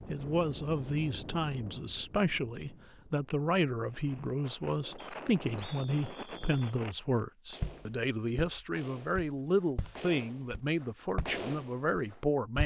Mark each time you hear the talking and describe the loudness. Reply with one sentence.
The talking can be heard from 0.1 to 12.6 s, at a steady volume.